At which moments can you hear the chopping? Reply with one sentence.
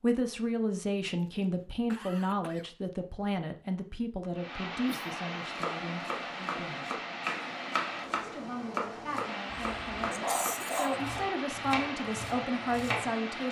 The chopping can be heard from 5.5 to 13.2 s.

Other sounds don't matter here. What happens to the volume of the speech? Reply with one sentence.
The volume of the speech goes down, then up.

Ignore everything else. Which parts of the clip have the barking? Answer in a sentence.
You can hear the barking from 9.5 to 11.1 s.